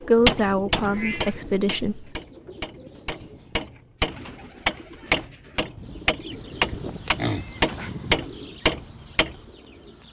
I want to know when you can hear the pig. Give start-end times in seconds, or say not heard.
7.0-8.3.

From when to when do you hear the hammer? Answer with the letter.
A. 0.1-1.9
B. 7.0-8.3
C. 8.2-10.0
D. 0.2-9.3
D.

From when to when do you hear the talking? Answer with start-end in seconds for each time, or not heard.
0.1-1.9.